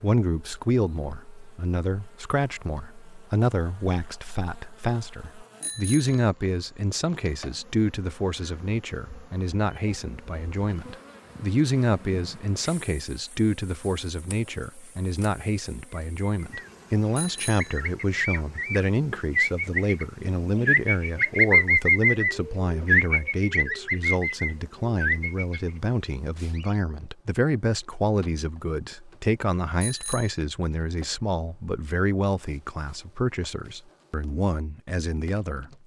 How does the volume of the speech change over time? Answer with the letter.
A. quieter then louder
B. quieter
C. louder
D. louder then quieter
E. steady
E.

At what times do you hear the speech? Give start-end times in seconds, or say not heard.
0.0-35.7.